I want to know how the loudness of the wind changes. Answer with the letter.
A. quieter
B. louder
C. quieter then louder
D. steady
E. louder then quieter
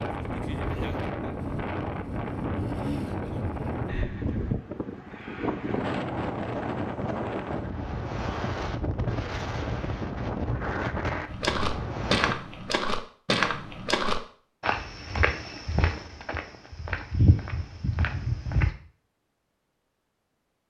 D.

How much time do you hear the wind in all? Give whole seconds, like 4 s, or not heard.
12 s.